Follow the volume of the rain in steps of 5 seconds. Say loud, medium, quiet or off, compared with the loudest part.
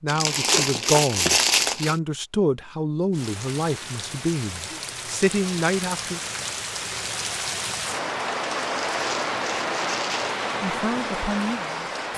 medium, loud, loud.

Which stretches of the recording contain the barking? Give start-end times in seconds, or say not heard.
not heard.